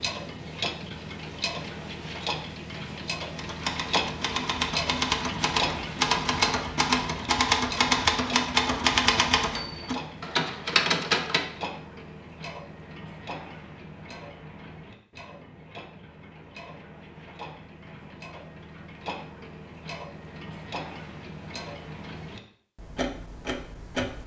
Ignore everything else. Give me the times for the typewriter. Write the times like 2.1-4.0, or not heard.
3.4-11.5.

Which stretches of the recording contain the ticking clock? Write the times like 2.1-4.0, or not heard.
0.0-24.2.